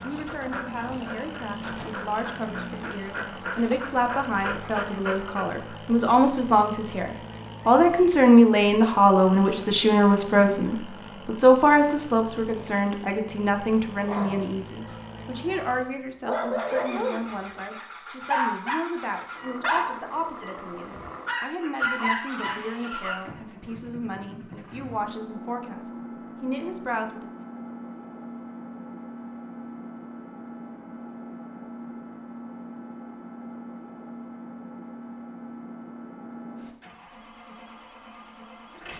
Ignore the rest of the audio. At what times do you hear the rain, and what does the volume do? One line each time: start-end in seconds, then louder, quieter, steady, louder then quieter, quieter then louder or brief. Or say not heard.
not heard.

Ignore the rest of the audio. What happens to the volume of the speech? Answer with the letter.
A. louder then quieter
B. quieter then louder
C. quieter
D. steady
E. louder
A.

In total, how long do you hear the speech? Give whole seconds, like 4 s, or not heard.
27 s.